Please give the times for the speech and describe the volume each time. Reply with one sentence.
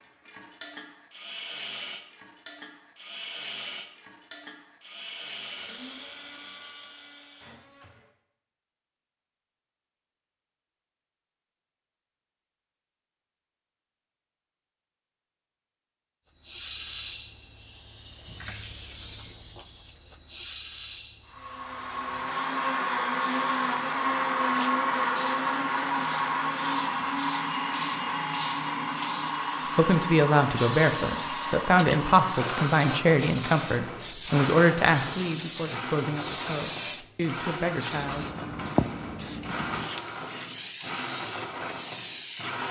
You can hear the speech from 29.8 to 38.2 s, getting quieter.